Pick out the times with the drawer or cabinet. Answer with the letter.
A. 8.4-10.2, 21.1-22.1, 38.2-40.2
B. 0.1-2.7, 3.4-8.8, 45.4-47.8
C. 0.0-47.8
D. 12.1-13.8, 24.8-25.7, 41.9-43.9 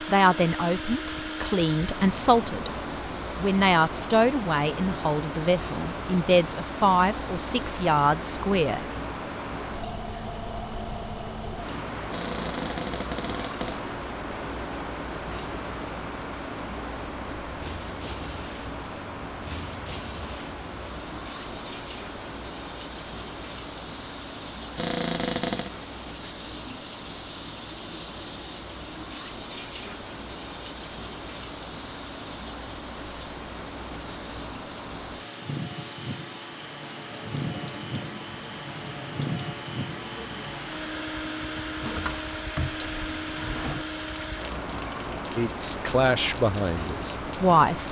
D.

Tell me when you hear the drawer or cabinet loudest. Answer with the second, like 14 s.
25 s.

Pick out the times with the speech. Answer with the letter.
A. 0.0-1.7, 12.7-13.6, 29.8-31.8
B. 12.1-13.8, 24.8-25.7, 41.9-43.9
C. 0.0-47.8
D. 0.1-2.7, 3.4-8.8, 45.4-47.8
D.